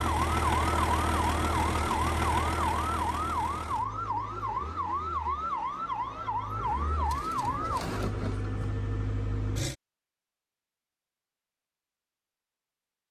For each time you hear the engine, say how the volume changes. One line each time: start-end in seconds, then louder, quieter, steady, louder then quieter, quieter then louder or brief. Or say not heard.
0.0-9.8 quieter then louder.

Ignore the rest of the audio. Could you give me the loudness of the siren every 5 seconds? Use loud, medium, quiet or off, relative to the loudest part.
loud, loud, off.